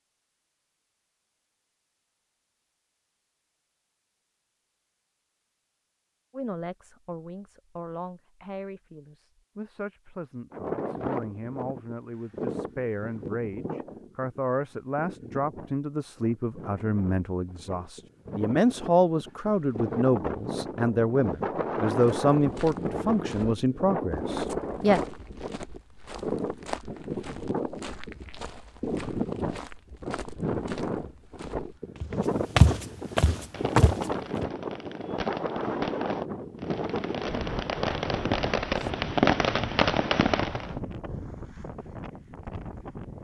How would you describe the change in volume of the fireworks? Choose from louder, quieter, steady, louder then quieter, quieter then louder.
louder.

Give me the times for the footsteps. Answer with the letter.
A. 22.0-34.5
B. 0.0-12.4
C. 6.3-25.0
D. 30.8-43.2
A.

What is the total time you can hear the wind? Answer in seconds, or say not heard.
33 s.